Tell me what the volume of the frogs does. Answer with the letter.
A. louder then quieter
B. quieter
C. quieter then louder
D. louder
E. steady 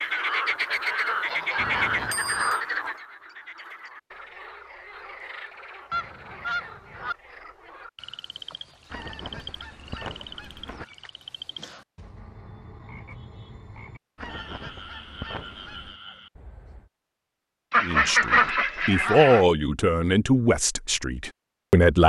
B.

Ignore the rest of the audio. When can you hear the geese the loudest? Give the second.
18 s.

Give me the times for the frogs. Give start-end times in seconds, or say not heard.
0.0-16.9.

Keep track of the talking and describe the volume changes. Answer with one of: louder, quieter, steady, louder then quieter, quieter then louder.
louder then quieter.